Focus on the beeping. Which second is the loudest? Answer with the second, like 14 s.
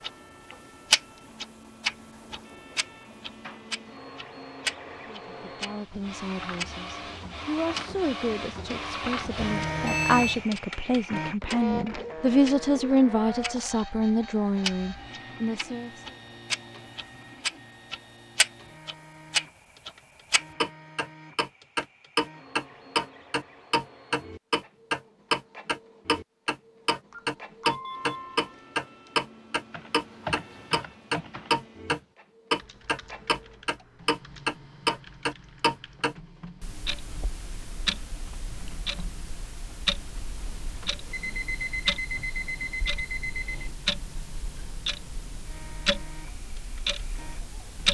10 s.